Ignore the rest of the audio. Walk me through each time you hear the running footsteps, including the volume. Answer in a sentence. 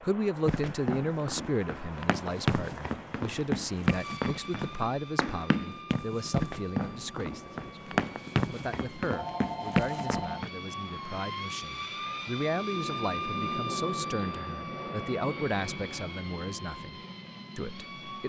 The running footsteps can be heard from 0.5 to 10.5 s, at a steady volume.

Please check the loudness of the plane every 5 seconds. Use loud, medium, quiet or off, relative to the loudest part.
medium, medium, loud, medium.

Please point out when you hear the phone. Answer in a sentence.
The phone can be heard from 9.1 to 10.4 s.